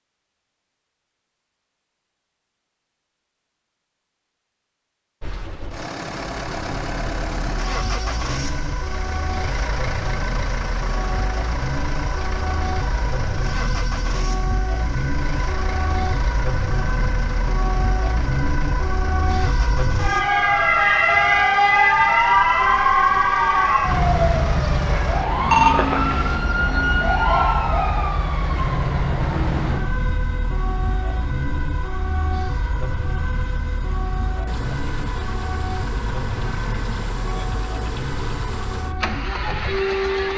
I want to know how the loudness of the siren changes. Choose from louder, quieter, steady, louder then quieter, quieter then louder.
louder then quieter.